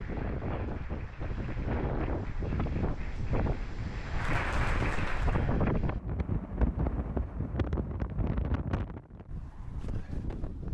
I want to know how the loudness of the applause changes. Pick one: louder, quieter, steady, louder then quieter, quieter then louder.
louder.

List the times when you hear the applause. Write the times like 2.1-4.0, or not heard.
0.0-5.5.